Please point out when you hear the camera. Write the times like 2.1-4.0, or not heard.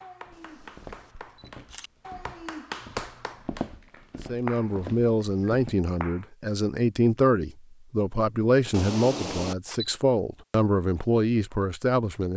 0.5-1.9, 8.7-9.9.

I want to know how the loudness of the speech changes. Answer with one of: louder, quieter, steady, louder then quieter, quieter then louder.
steady.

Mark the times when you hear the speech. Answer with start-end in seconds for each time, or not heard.
4.2-12.3.